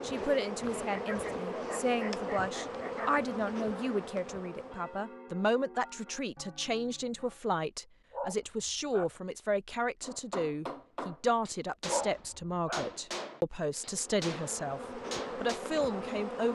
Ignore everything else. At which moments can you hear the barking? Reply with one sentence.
You can hear the barking from 0.9 to 3.1 s, from 8.1 to 9.2 s and from 11.8 to 12.9 s.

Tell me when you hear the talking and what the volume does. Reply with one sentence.
You can hear the talking from 0.0 to 16.5 s, at a steady volume.